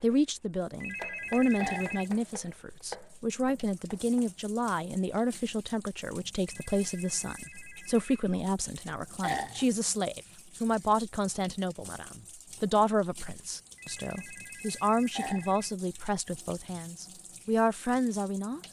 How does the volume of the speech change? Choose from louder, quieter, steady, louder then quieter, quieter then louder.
steady.